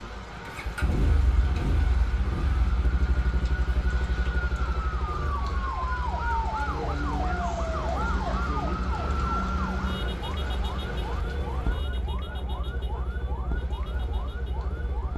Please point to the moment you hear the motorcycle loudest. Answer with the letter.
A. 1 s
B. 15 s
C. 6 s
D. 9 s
A.